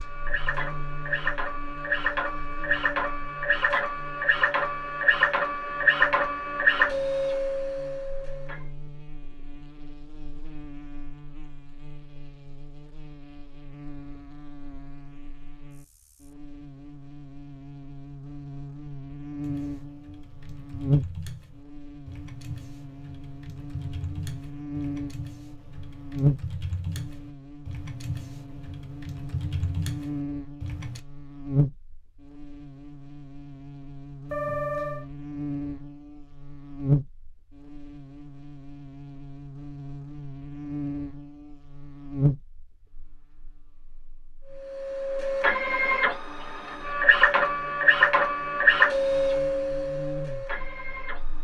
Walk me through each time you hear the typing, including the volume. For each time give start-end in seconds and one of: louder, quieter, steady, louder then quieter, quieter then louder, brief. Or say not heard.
19.4-31.0 louder.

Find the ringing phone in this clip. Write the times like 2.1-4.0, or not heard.
34.3-35.0.